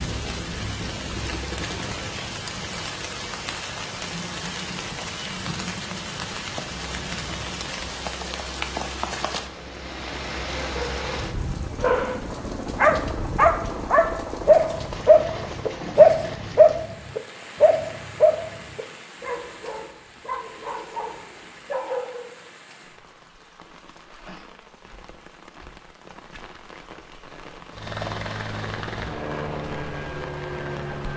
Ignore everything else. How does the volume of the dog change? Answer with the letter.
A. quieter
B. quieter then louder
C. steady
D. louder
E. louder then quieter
E.